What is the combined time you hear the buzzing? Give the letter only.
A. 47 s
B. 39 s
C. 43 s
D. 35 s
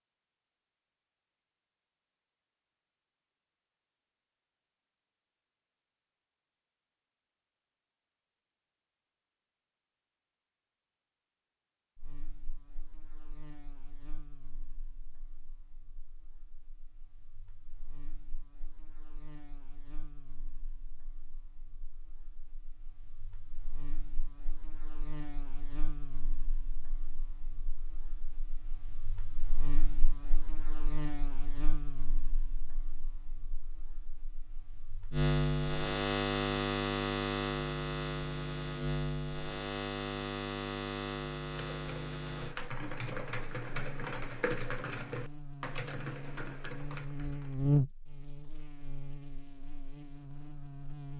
B.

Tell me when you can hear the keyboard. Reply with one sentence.
You can hear the keyboard from 41.8 to 47.5 s.